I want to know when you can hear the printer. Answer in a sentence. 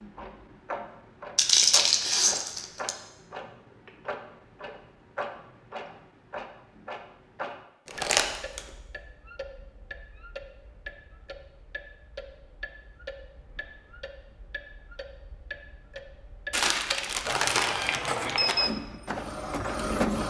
The printer can be heard from 17.2 to 20.2 s.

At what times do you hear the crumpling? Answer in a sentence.
You can hear the crumpling from 1.4 to 3.0 s, from 7.8 to 8.6 s and from 16.5 to 18.6 s.